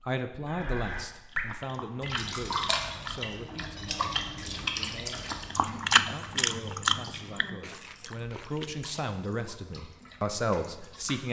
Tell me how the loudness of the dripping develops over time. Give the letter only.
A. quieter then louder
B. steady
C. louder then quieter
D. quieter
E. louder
D.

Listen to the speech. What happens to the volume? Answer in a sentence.
The volume of the speech goes down, then up.